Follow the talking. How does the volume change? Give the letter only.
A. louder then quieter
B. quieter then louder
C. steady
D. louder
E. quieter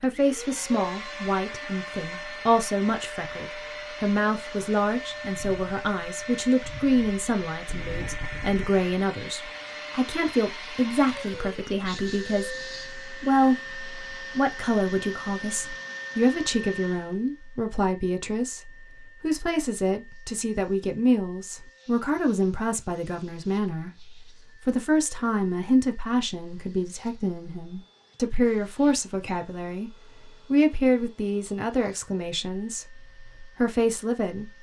C.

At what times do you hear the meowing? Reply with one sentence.
You can't hear the meowing here.